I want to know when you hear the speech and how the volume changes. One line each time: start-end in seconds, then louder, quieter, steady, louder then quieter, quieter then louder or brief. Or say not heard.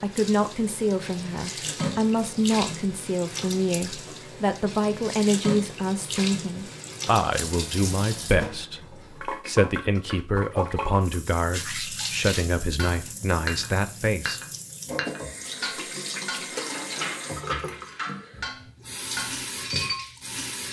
0.0-14.4 steady.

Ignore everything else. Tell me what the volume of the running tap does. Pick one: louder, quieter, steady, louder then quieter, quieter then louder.
steady.